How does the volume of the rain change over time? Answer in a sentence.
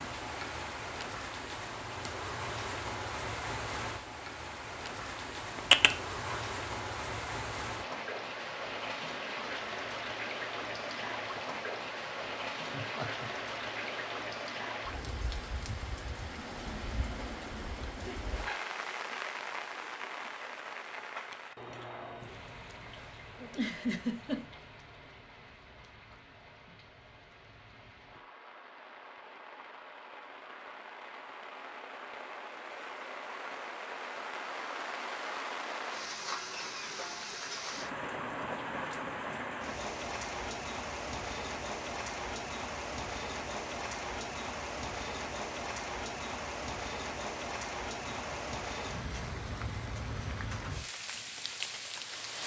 The loudness of the rain goes down, then up.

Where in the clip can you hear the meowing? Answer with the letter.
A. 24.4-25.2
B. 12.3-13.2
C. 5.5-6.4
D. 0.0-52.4
C.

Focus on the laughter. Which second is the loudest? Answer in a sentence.
The loudest moment of the laughter is at 24 seconds.